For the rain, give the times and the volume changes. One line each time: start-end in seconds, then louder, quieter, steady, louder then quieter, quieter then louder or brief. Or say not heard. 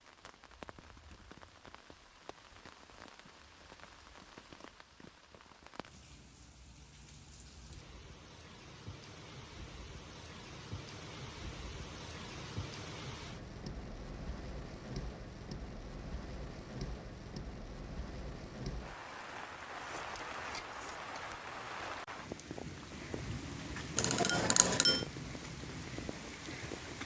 0.0-27.0 louder.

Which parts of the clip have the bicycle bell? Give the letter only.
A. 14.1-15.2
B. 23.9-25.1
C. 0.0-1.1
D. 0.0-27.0
B.